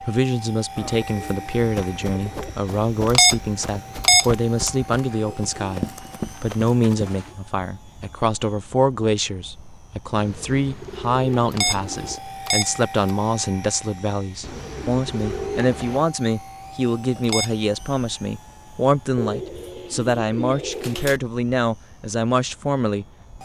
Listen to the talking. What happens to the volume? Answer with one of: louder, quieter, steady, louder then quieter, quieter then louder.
steady.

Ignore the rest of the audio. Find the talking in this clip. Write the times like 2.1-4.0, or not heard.
0.0-23.4.